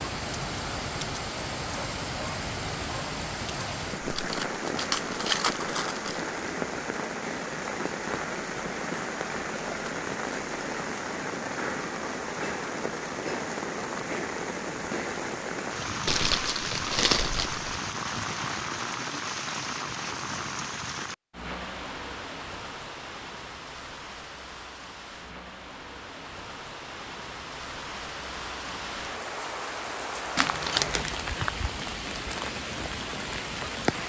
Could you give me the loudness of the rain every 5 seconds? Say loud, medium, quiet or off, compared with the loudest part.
loud, loud, loud, loud, medium, medium, loud.